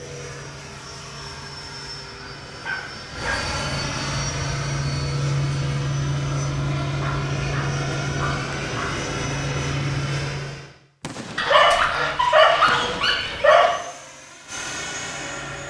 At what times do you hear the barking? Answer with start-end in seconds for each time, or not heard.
2.5-3.5, 7.0-8.9, 11.3-13.7.